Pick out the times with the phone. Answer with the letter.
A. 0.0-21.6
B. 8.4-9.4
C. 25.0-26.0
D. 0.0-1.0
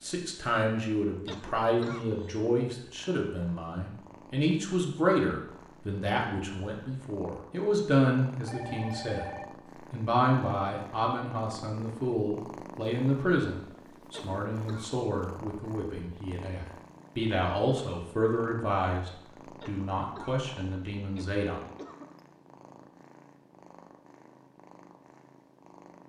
B.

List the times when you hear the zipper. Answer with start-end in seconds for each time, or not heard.
not heard.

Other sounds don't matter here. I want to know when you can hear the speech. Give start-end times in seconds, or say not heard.
0.0-21.6.